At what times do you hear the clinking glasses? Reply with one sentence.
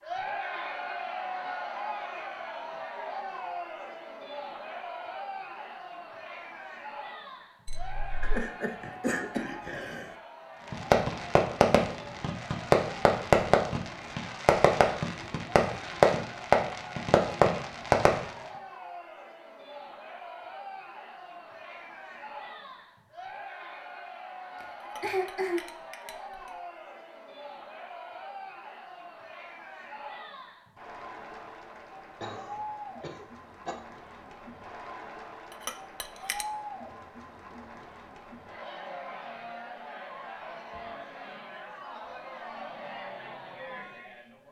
You can hear the clinking glasses from 7.7 to 8.4 s, from 24.9 to 26.5 s and from 35.6 to 36.5 s.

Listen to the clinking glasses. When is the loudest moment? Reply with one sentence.
The loudest moment of the clinking glasses is at 36 seconds.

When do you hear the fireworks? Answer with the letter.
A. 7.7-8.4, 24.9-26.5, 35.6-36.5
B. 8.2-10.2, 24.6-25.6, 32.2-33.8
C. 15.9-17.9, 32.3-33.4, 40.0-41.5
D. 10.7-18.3
D.